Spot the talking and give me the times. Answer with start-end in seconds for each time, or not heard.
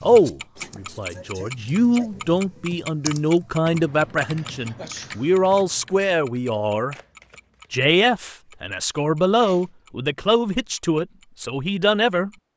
0.0-7.0, 7.7-12.3.